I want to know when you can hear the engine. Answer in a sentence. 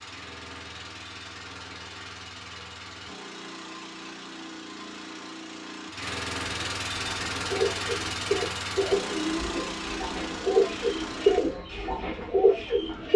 The engine can be heard from 0.0 to 11.6 s.